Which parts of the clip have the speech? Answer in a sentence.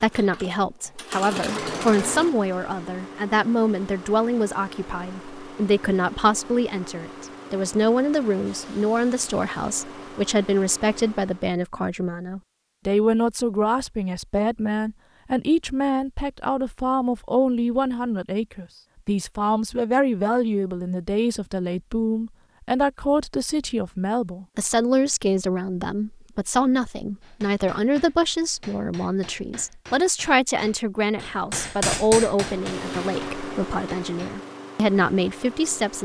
The speech can be heard from 0.0 to 36.0 s.